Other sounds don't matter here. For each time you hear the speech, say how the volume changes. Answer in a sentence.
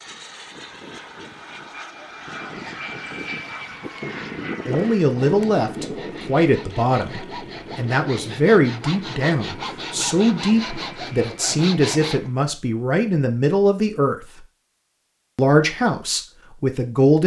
You can hear the speech from 4.7 to 14.2 s, at a steady volume; and briefly from 15.3 to 17.2 s.